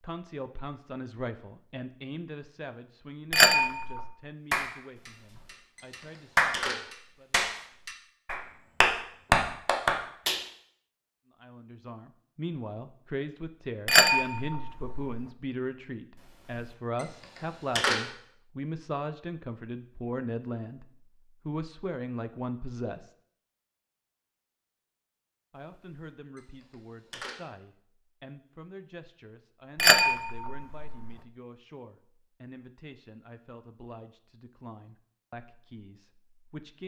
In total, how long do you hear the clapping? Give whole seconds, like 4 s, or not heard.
6 s.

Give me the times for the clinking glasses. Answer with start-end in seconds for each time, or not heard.
3.3-4.1, 13.8-15.2, 29.8-31.1.